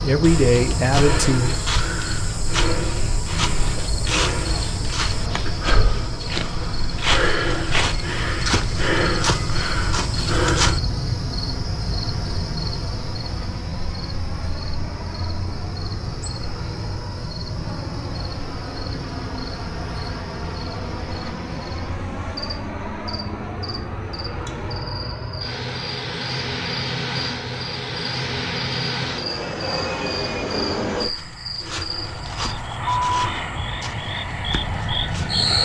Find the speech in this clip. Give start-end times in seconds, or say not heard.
0.0-1.6.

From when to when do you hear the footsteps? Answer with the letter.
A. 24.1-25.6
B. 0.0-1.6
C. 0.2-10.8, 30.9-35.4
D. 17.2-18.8
C.